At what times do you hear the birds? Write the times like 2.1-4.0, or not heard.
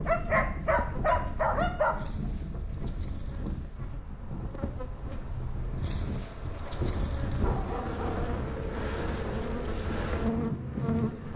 not heard.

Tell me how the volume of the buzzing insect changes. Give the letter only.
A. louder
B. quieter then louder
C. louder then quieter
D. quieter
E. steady
A.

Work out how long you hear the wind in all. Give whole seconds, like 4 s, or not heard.
11 s.